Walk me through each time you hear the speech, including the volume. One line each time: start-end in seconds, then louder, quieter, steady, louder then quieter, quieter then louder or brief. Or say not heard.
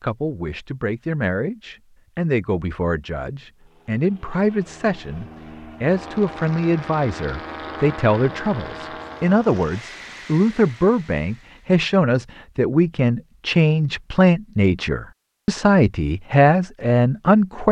0.0-17.6 louder.